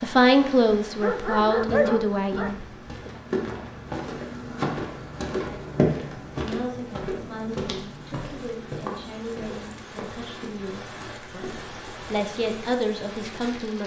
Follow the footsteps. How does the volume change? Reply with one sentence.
The volume of the footsteps goes up, then down.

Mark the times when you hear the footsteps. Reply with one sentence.
You can hear the footsteps from 1.5 to 11.9 s.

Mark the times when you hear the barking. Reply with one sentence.
The barking can be heard from 1.0 to 2.5 s.